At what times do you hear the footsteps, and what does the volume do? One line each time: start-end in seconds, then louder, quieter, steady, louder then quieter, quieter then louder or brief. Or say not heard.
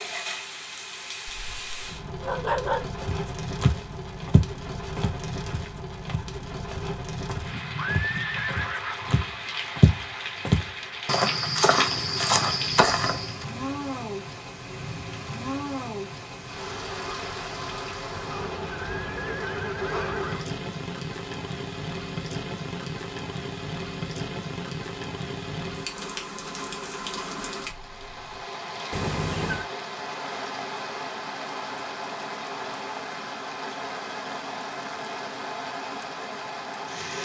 3.0-13.3 quieter then louder.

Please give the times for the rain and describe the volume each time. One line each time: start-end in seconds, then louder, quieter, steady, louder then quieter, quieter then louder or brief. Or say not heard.
0.0-37.1 steady.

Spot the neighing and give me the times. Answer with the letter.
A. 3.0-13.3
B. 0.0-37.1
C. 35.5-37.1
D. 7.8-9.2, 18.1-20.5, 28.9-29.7
D.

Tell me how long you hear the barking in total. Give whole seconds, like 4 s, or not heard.
2 s.